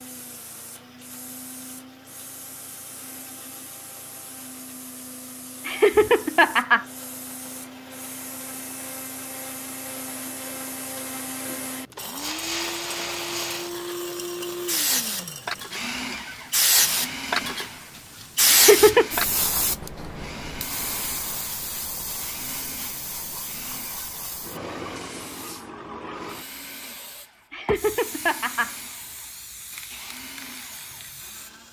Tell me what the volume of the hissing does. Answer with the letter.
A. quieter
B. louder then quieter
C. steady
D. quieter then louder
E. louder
B.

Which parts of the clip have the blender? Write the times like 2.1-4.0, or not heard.
0.0-31.6.